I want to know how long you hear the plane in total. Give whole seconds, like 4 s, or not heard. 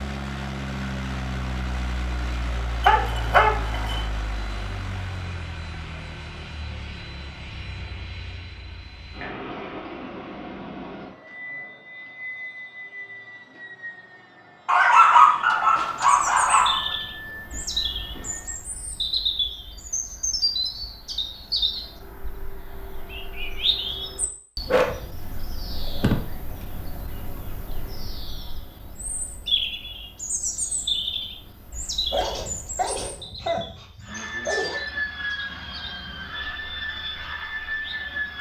23 s.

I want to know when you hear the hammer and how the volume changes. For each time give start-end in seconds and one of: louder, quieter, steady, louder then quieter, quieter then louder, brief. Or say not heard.
not heard.